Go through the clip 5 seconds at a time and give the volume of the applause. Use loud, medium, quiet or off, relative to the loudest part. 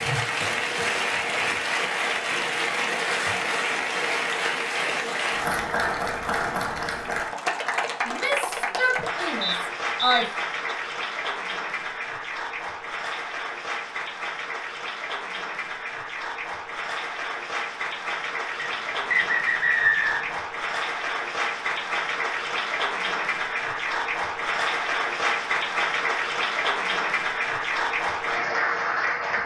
loud, loud, medium, medium, loud, loud.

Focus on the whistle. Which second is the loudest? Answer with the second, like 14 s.
20 s.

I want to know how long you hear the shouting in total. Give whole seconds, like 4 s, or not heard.
2 s.